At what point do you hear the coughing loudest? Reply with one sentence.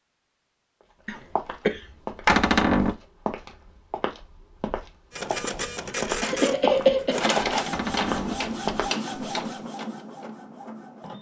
The loudest moment of the coughing is at 7 seconds.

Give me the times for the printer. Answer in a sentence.
The printer can be heard from 5.1 to 11.1 s.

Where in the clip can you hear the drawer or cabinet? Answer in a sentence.
The drawer or cabinet can be heard from 2.2 to 3.0 s and from 7.7 to 8.4 s.